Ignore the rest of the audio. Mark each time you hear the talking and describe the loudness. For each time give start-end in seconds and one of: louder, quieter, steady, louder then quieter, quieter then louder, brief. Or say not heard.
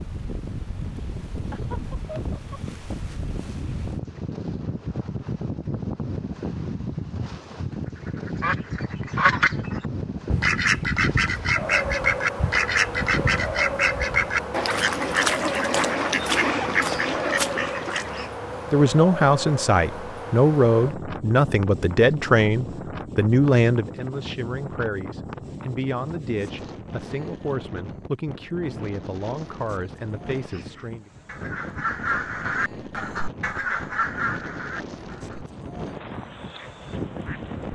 18.7-31.1 quieter.